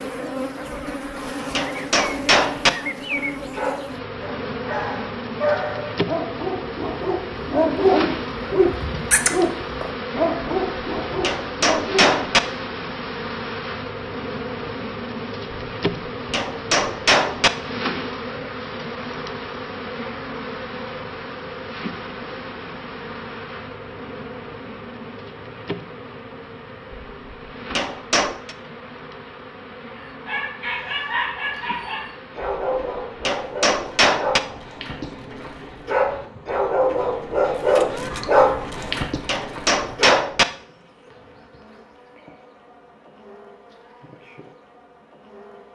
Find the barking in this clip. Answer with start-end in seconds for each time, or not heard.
2.4-12.3, 29.9-40.2.